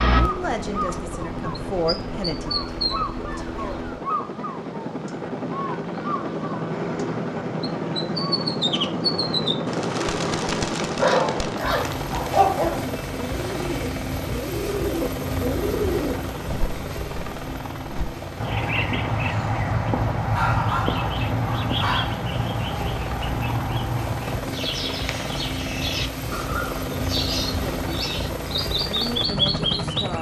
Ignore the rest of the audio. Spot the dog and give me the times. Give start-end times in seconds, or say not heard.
10.9-12.8, 20.3-22.1.